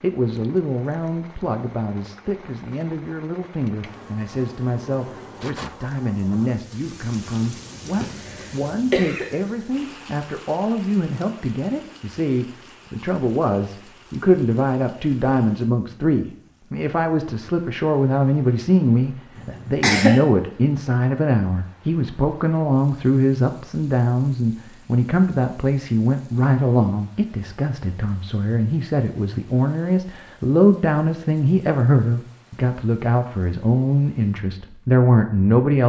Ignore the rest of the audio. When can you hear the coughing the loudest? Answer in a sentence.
The loudest moment of the coughing is at 20 seconds.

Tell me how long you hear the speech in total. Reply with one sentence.
You can hear the speech for 36 seconds altogether.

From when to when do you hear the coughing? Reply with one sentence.
The coughing can be heard from 8.0 to 9.2 s and from 19.4 to 20.2 s.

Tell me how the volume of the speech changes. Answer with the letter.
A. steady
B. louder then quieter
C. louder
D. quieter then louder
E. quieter
C.